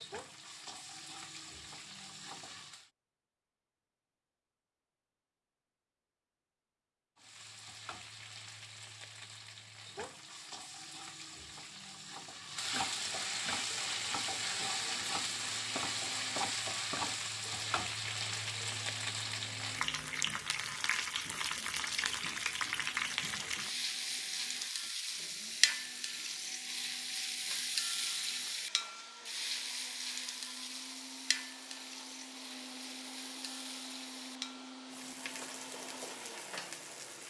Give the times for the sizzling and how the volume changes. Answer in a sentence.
You can hear the sizzling briefly from 0.0 to 2.9 s; and from 7.2 to 37.2 s, getting louder then quieter.